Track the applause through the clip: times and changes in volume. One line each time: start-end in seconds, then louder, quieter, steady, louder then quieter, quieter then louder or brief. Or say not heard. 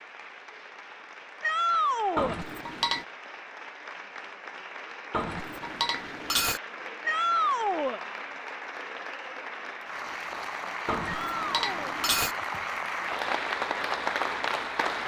0.0-15.0 louder.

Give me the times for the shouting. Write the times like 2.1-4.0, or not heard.
1.4-2.4, 7.0-8.0, 11.1-11.9.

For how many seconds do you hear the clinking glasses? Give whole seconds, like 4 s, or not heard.
4 s.